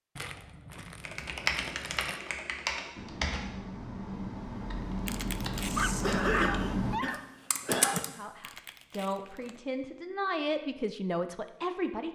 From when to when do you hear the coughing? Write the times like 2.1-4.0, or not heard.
6.0-8.0.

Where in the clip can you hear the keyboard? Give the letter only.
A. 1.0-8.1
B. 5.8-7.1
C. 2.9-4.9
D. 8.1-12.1
A.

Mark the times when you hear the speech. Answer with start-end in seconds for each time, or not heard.
8.1-12.1.